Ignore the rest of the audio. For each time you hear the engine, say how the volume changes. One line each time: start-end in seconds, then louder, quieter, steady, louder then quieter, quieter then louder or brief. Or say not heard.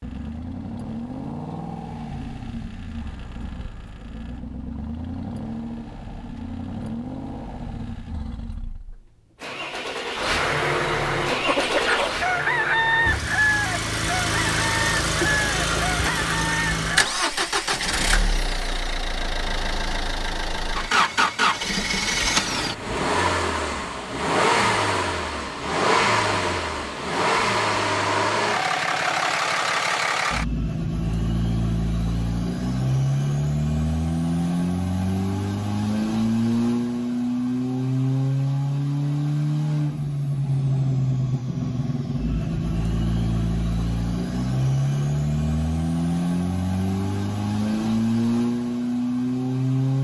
0.0-49.9 louder.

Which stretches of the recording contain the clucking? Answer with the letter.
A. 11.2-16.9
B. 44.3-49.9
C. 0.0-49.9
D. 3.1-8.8
A.